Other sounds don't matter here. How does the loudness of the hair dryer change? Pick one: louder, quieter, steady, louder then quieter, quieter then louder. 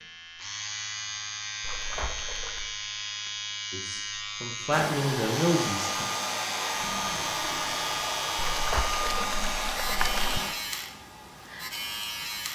quieter.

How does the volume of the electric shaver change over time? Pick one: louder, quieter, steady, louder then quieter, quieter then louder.
steady.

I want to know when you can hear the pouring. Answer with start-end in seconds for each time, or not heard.
1.6-2.7, 8.4-10.4.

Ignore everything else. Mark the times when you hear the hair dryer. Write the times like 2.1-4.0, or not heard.
4.7-12.5.